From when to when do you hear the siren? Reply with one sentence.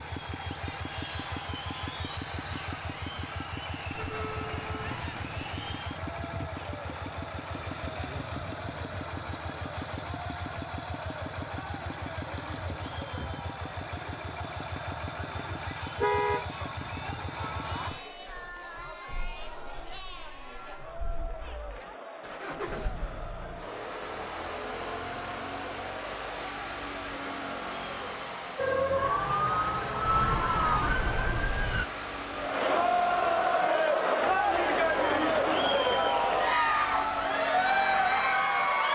You can hear the siren from 28.6 to 31.9 s.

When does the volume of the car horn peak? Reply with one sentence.
The volume of the car horn peaks at 16 seconds.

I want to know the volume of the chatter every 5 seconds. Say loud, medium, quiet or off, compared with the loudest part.
quiet, quiet, quiet, quiet, quiet, quiet, loud, loud.